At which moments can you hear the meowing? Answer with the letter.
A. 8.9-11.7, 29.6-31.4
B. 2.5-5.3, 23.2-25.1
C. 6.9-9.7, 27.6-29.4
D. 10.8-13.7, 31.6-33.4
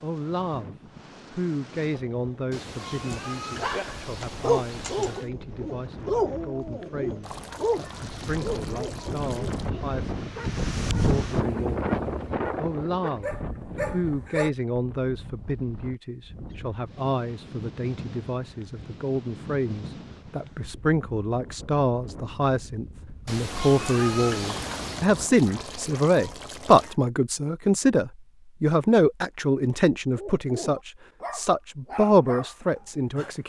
B.